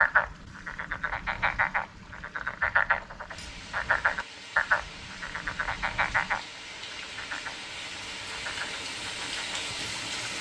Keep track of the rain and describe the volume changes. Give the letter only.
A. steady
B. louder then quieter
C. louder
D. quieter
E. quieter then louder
C.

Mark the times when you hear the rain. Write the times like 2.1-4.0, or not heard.
3.2-10.3.